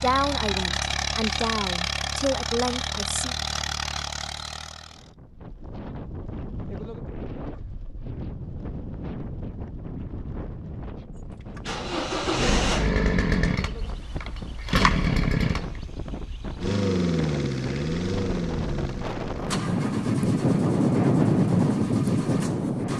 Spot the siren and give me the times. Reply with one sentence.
You can't hear the siren here.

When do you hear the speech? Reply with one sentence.
You can hear the speech from 0.0 to 3.4 s.